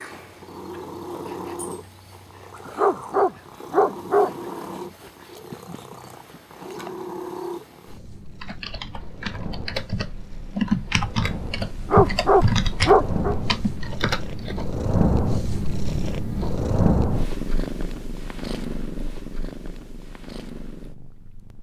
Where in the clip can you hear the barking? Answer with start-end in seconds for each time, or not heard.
2.8-4.5, 11.9-13.3.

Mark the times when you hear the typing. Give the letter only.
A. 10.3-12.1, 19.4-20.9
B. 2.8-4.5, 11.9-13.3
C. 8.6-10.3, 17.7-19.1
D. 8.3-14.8
D.